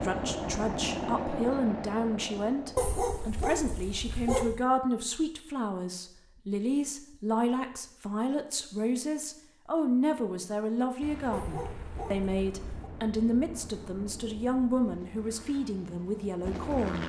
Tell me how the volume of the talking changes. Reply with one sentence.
The volume of the talking stays about the same.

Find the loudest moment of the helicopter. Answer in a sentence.
The volume of the helicopter peaks at 1 second.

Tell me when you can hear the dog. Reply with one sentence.
The dog can be heard from 2.8 to 4.7 s and from 11.3 to 12.9 s.